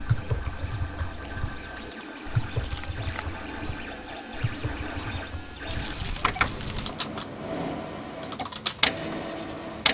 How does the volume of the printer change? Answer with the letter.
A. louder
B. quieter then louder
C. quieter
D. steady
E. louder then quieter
A.